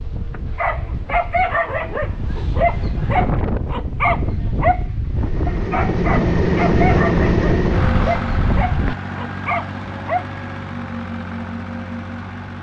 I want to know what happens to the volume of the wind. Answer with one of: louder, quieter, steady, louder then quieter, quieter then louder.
louder.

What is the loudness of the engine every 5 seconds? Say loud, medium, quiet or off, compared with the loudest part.
off, loud, medium.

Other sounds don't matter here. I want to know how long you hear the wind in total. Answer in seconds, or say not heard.
9 s.